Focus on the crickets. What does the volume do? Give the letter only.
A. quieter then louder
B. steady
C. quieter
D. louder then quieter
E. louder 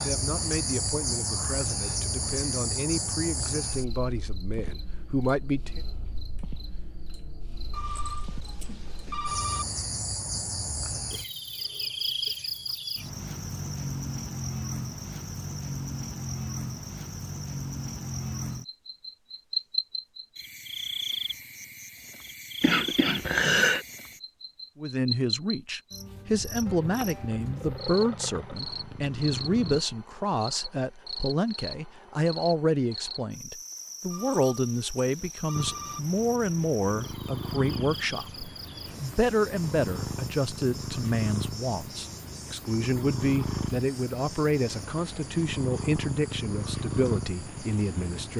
C.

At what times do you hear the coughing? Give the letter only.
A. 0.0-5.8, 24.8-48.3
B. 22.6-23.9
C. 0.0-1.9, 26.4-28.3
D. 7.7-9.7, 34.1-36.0
B.